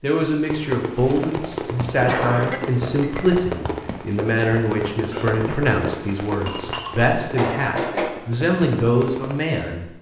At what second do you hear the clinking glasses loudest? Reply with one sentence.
The volume of the clinking glasses peaks at 8 seconds.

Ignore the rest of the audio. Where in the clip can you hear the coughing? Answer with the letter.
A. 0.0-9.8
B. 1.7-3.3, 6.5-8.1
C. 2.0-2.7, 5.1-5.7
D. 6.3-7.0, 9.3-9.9
C.